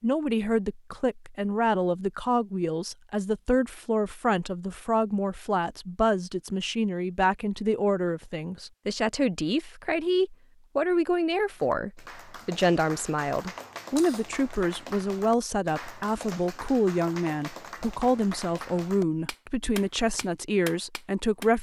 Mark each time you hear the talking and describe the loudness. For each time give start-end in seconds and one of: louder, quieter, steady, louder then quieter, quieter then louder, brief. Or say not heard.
0.0-21.5 steady.